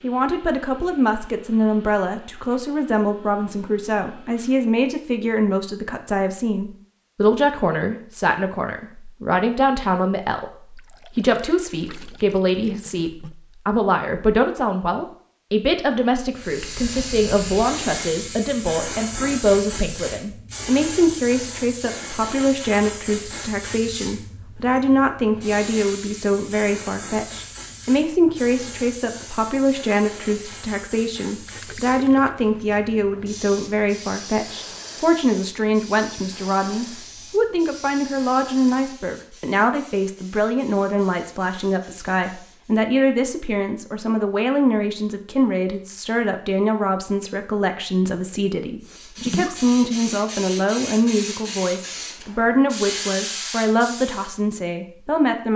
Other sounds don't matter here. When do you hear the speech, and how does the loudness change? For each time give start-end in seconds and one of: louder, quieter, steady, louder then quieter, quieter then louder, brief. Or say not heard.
0.0-55.5 steady.